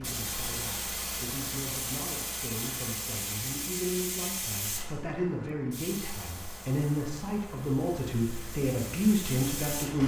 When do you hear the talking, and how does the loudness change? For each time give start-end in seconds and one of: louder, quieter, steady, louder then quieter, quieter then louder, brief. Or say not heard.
0.0-10.0 louder.